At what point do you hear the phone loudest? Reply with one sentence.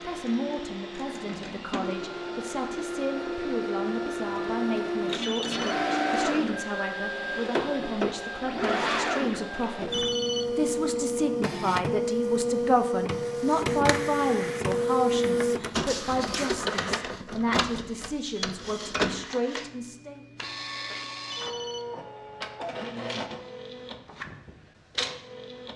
The volume of the phone peaks at 10 seconds.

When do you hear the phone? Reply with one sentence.
You can hear the phone from 5.2 to 5.7 s, from 9.9 to 10.6 s and from 21.3 to 21.9 s.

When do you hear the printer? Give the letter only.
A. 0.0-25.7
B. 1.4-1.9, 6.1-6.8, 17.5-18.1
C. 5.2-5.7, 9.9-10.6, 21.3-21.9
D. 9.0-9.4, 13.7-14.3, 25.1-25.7
A.